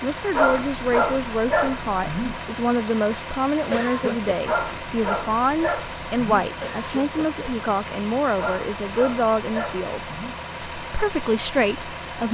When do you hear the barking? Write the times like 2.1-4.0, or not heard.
0.3-2.5, 4.5-6.5, 8.3-10.4.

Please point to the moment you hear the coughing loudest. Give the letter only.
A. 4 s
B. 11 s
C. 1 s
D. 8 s
A.